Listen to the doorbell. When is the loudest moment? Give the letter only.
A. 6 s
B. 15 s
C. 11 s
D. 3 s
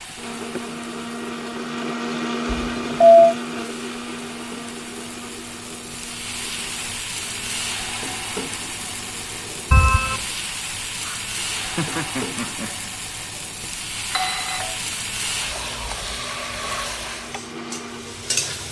D.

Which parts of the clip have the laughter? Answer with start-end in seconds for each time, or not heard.
0.1-0.6, 11.0-12.9.